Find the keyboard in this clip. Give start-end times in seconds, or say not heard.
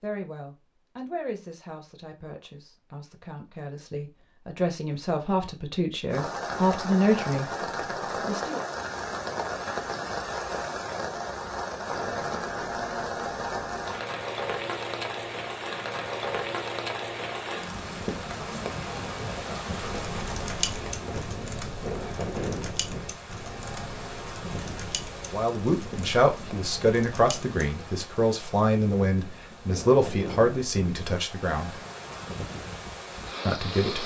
19.8-27.6.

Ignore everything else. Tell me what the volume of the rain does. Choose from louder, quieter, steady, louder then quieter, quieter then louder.
quieter.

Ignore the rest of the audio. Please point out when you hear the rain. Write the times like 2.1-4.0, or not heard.
6.1-34.0.